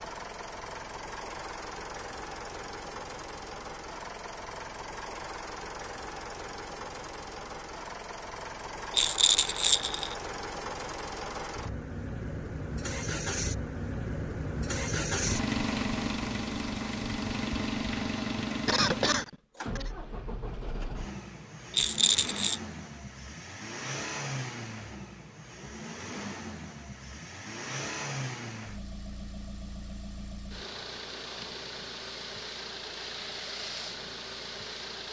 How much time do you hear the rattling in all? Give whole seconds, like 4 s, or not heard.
2 s.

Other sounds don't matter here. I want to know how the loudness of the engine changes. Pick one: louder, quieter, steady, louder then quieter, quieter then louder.
louder then quieter.